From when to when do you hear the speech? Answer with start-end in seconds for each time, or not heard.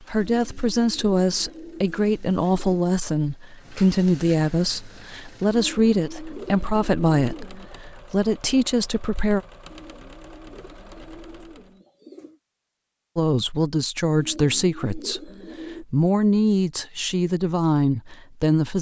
0.1-9.4, 13.2-18.7.